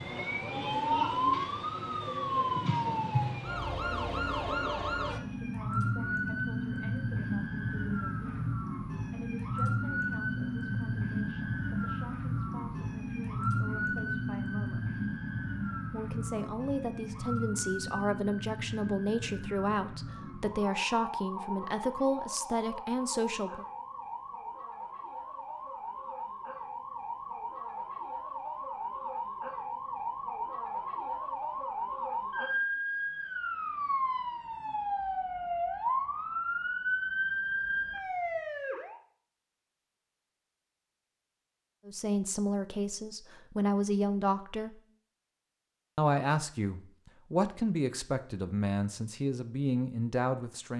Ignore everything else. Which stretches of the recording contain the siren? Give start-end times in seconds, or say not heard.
0.0-39.0.